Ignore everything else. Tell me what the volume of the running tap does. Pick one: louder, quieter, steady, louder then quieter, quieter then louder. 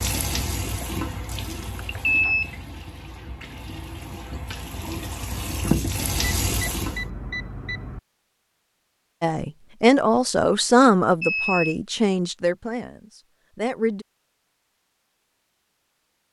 quieter then louder.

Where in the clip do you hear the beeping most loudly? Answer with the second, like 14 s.
2 s.